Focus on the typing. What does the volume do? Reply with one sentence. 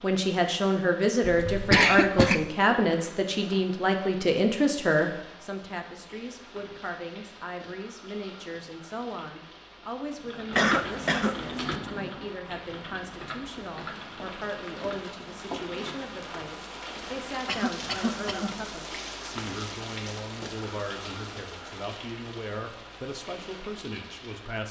The loudness of the typing goes down.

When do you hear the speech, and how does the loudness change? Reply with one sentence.
The speech can be heard from 0.0 to 24.6 s, getting quieter.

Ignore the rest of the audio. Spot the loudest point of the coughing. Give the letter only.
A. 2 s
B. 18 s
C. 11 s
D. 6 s
A.